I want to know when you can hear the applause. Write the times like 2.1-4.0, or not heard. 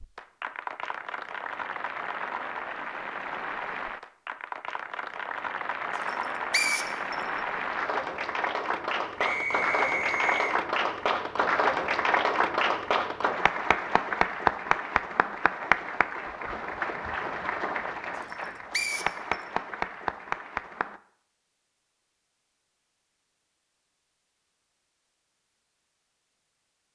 0.0-21.0.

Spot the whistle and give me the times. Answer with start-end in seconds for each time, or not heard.
6.5-7.2, 9.2-10.6, 18.7-19.4.